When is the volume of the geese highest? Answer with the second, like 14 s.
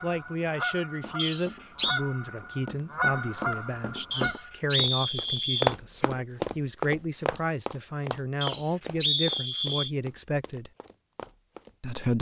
3 s.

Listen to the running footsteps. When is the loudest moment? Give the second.
6 s.